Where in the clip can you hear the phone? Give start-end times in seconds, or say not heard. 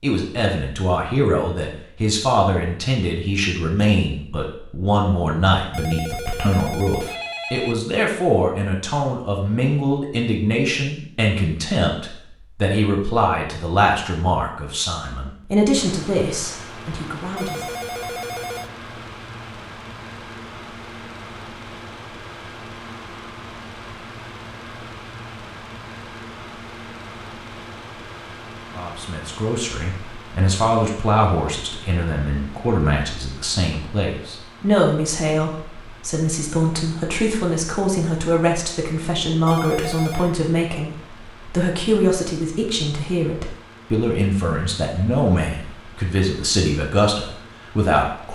5.7-7.8, 17.4-18.7, 39.5-40.4.